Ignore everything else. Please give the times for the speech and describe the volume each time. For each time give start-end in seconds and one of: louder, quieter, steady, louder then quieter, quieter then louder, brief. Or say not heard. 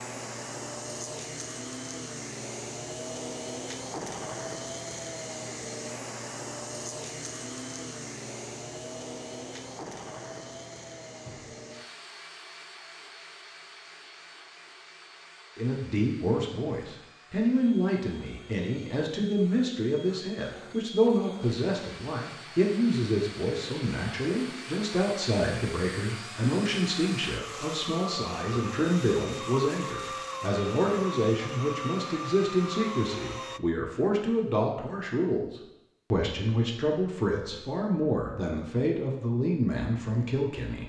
15.6-40.8 steady.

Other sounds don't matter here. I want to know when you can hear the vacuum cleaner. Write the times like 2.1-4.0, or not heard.
0.0-33.6.